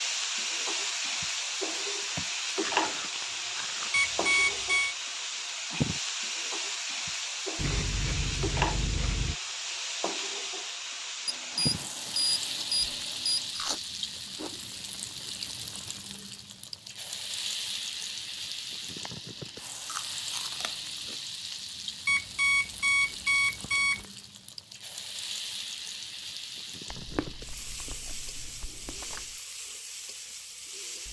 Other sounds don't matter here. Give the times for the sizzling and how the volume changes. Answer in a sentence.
You can hear the sizzling from 0.0 to 31.0 s, getting quieter.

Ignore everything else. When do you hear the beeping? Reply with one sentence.
You can hear the beeping from 3.9 to 5.0 s, from 11.2 to 13.6 s and from 22.1 to 24.1 s.